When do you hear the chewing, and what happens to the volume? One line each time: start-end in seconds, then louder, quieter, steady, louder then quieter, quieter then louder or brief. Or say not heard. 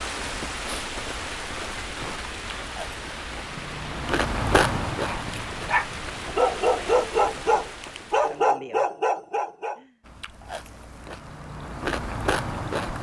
0.1-6.3 louder then quieter
10.0-12.9 brief.